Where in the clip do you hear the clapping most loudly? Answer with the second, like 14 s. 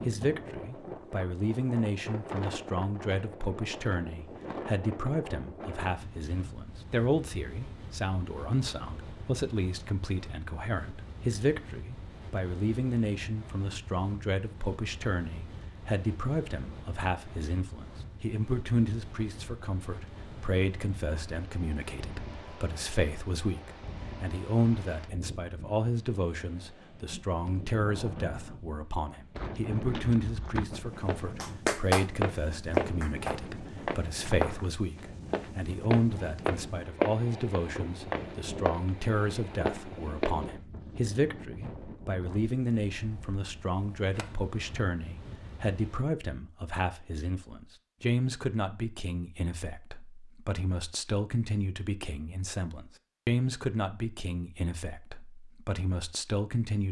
32 s.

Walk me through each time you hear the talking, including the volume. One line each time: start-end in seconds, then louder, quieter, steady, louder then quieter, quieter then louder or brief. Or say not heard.
0.1-56.8 steady.